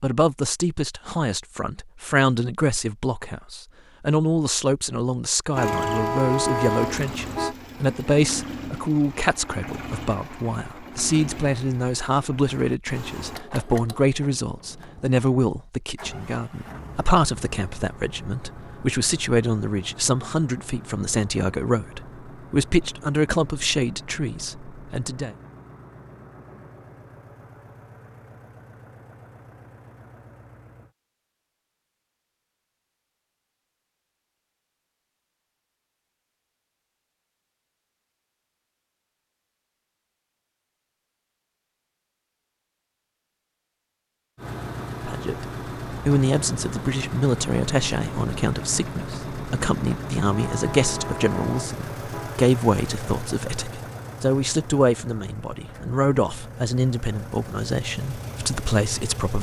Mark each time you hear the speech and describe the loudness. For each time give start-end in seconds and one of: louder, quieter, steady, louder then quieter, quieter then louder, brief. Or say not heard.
0.0-25.4 steady
45.0-59.3 steady.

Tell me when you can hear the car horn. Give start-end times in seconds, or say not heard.
5.5-7.5, 50.3-52.4.